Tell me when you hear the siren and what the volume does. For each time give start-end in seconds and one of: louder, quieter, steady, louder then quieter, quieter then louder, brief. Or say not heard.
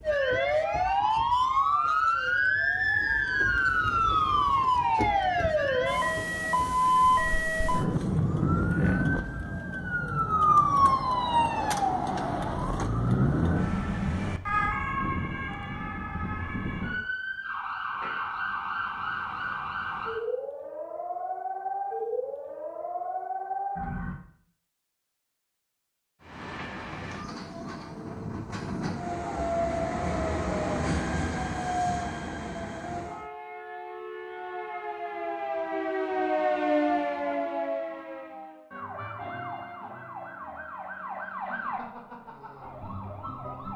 0.0-24.2 quieter
33.0-43.7 louder then quieter.